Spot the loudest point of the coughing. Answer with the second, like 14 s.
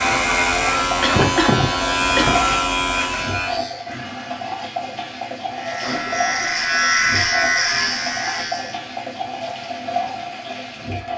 1 s.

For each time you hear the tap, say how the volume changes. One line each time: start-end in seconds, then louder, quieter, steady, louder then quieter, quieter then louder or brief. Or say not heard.
0.0-11.1 steady.